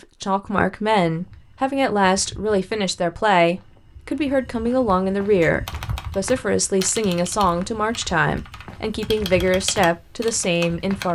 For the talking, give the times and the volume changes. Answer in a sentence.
The talking can be heard from 0.2 to 11.1 s, at a steady volume.